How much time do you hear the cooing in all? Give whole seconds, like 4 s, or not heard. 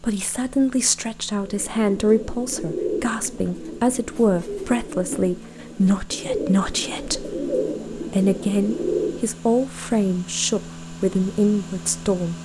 8 s.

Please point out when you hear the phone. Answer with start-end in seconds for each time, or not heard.
not heard.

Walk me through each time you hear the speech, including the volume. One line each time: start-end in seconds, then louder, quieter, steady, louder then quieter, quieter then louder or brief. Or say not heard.
0.0-12.3 steady.